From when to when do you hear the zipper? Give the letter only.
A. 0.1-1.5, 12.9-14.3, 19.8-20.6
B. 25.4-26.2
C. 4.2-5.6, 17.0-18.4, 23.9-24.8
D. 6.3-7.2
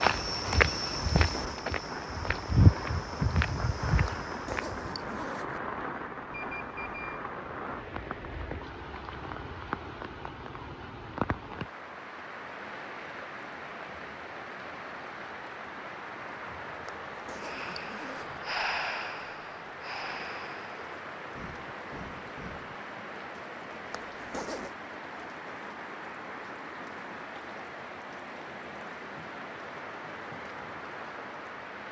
C.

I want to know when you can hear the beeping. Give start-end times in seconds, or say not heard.
6.3-7.2.